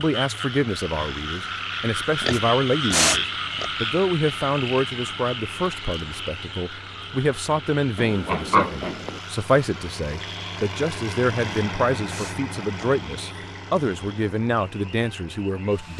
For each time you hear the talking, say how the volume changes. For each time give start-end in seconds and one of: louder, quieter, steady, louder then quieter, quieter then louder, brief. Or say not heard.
0.0-15.9 steady.